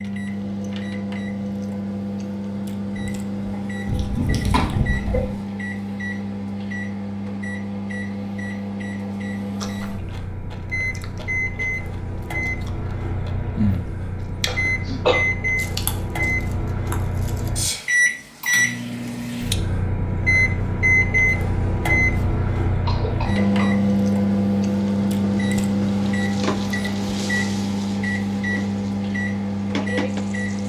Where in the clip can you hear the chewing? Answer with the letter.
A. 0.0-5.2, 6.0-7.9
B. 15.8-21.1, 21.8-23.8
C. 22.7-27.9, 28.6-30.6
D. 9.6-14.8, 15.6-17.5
D.